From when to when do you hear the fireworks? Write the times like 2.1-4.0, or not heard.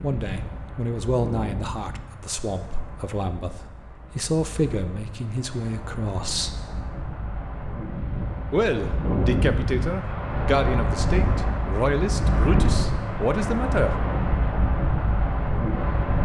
not heard.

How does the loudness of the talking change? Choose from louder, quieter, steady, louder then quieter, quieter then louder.
steady.